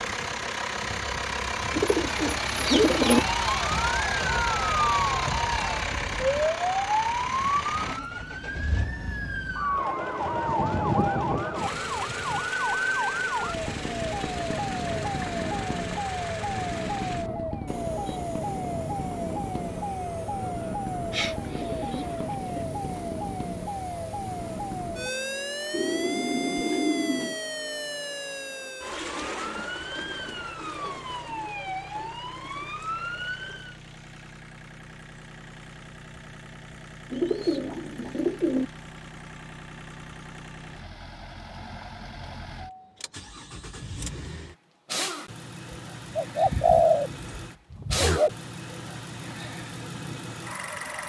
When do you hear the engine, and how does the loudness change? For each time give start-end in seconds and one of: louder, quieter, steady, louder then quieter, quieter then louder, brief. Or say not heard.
0.0-51.0 quieter then louder.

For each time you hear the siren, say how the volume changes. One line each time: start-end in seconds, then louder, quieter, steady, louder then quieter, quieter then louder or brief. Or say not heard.
3.0-33.8 quieter.